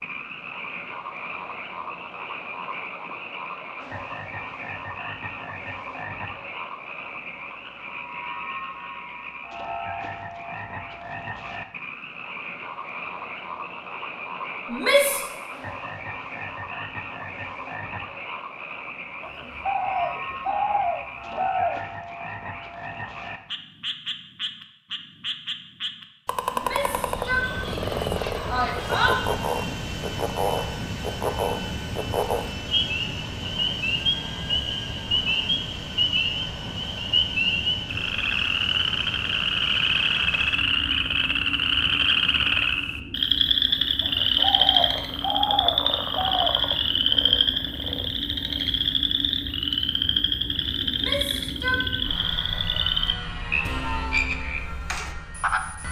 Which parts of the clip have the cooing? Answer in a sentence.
You can hear the cooing from 19.2 to 21.8 s and from 44.0 to 46.7 s.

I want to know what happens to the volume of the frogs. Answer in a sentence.
The loudness of the frogs goes up.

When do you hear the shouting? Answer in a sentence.
The shouting can be heard from 14.7 to 15.3 s, from 26.6 to 29.2 s and from 50.9 to 51.9 s.